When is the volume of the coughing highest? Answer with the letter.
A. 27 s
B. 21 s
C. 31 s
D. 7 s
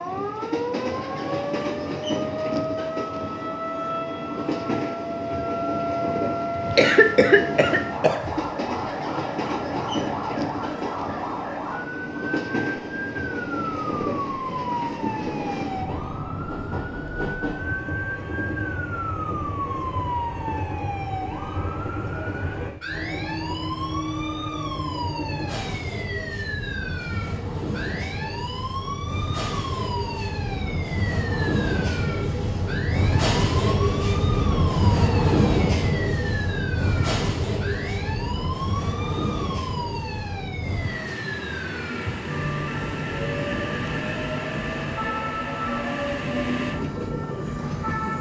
D.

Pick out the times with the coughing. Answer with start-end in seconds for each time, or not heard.
6.5-8.2.